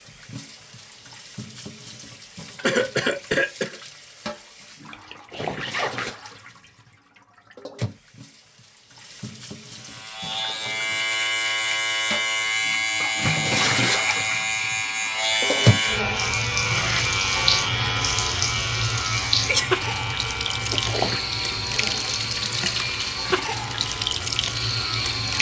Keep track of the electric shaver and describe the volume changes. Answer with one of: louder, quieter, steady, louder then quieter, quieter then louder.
quieter.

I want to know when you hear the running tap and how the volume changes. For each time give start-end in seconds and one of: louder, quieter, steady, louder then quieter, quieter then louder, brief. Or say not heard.
0.0-25.3 louder.